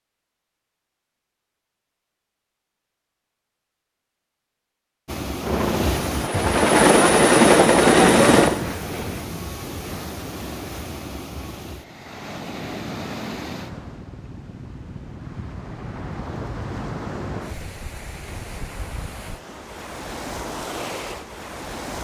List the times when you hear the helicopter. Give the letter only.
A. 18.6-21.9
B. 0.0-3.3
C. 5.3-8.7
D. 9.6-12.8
C.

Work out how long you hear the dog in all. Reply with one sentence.
The dog can't be heard in this clip.